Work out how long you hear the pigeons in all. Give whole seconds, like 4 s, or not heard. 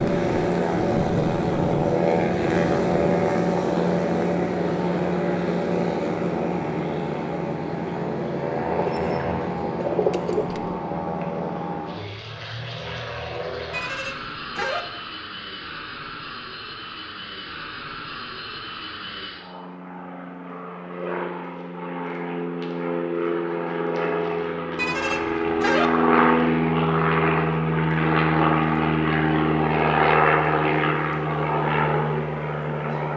2 s.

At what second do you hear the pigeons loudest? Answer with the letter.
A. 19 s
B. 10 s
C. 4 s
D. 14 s
B.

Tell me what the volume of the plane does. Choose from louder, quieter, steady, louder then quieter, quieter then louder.
quieter then louder.